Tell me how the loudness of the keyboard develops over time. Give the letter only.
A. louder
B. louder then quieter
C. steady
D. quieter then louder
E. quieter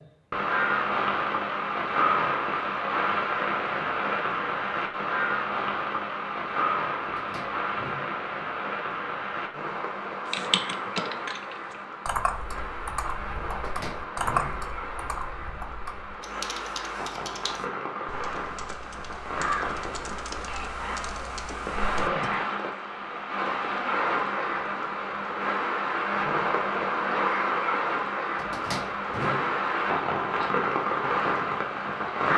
E.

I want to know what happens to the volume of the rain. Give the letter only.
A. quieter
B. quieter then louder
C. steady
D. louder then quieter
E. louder
B.